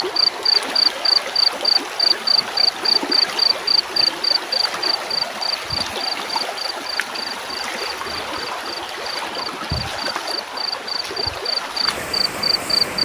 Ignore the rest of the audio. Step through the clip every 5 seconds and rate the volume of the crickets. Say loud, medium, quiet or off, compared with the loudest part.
loud, medium, medium.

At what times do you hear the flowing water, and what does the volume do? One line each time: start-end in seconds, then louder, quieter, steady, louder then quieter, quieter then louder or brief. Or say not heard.
0.0-13.0 steady.